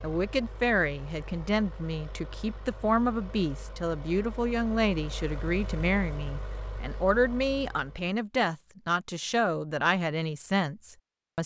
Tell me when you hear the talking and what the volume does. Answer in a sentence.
The talking can be heard from 0.0 to 11.4 s, at a steady volume.